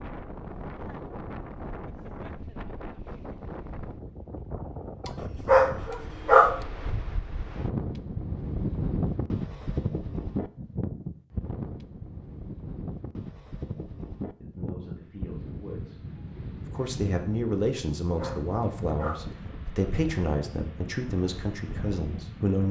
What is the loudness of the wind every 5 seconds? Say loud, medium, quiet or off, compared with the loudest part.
medium, loud, loud, medium, medium.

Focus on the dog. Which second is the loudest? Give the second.
6 s.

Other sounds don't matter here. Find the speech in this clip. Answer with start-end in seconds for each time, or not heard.
14.4-22.6.